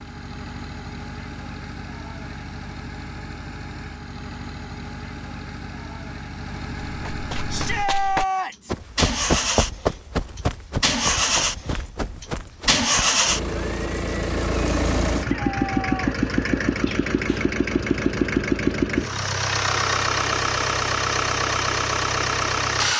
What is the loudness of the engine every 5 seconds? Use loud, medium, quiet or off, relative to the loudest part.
quiet, medium, loud, loud, loud.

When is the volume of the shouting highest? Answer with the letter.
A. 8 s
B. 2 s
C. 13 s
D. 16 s
A.